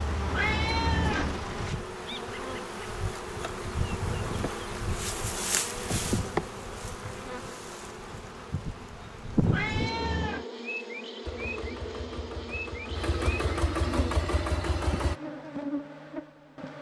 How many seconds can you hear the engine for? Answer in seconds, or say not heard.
6 s.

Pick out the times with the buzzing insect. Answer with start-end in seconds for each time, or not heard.
0.0-16.7.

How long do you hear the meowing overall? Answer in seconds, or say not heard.
2 s.